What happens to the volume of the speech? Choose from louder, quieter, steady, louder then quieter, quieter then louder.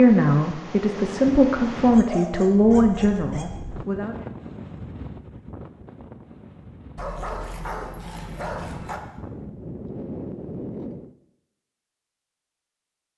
louder then quieter.